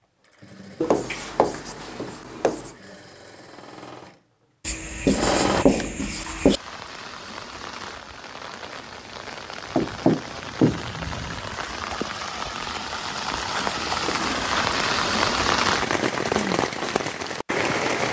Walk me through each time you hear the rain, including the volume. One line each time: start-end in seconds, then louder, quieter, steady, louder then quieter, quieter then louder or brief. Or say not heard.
6.0-18.0 louder.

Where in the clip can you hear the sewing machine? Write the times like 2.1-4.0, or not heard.
0.0-5.7.